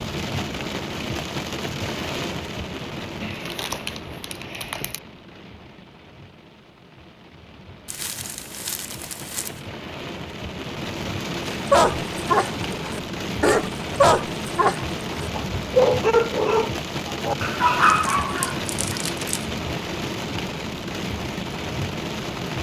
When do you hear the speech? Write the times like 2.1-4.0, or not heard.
not heard.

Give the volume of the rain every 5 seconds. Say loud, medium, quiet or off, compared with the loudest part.
loud, quiet, loud, loud, loud.